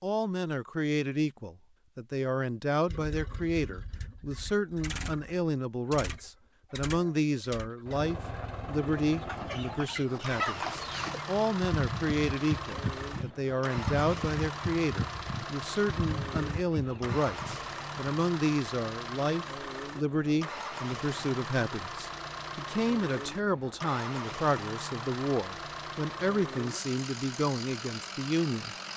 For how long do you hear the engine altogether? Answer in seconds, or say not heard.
26 s.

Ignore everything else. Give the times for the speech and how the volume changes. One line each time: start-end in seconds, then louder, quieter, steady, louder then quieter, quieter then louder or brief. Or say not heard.
0.0-28.9 steady.